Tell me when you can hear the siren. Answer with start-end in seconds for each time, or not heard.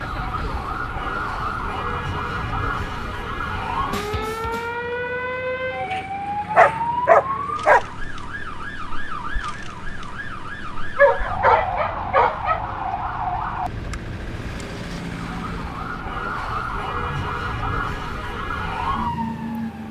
0.0-19.8.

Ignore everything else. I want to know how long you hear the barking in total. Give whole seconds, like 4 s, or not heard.
3 s.